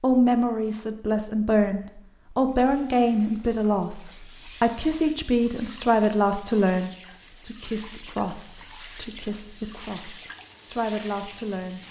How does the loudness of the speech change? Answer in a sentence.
The loudness of the speech goes down.